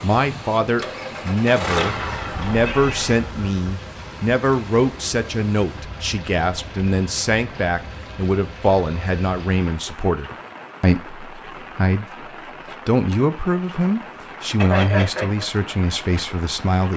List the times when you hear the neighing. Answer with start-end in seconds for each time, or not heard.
14.6-15.4.